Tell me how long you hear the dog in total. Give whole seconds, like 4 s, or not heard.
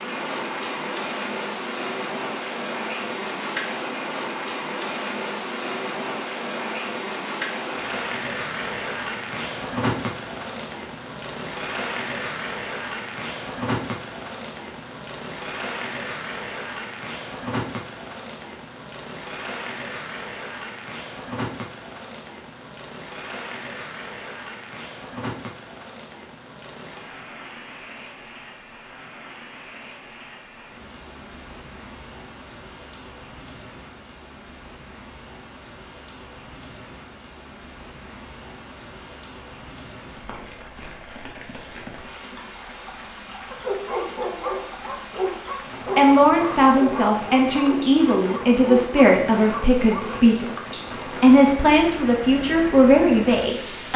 7 s.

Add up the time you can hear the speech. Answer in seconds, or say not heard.
8 s.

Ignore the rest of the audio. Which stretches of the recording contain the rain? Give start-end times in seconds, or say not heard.
0.0-53.9.